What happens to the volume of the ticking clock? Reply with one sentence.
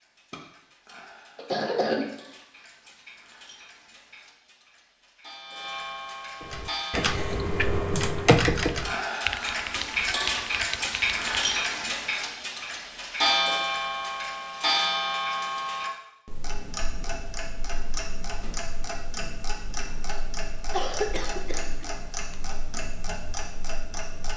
The volume of the ticking clock goes up, then down.